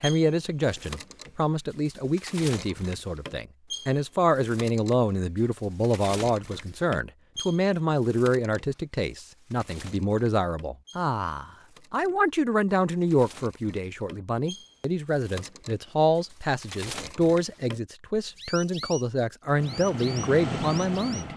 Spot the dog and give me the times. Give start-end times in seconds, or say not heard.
not heard.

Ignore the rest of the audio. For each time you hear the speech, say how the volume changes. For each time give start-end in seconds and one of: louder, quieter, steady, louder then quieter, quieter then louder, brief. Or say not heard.
0.0-21.3 steady.